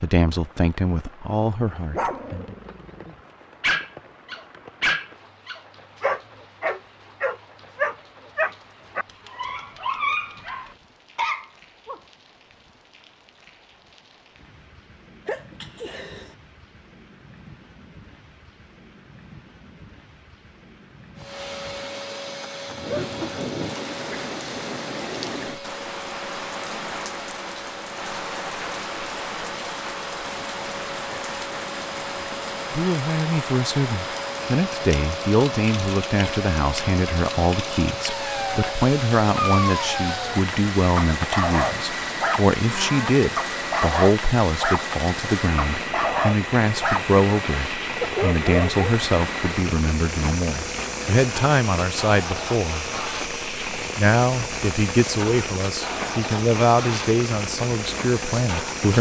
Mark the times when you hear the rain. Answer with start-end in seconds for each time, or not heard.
0.0-58.9.